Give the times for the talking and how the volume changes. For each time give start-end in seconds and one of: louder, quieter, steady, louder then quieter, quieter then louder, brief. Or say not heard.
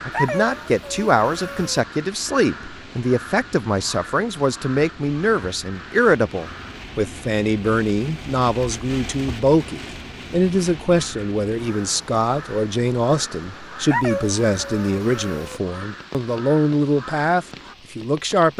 0.1-18.5 steady.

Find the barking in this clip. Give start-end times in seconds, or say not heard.
0.1-1.9, 13.9-15.6.